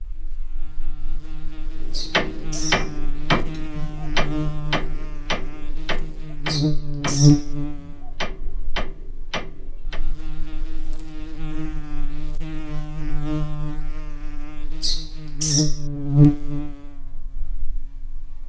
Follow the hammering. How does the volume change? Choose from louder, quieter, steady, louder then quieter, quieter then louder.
quieter.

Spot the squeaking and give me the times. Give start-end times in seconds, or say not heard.
1.9-2.9, 6.5-7.5, 14.8-15.8.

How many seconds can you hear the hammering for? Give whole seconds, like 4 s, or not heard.
8 s.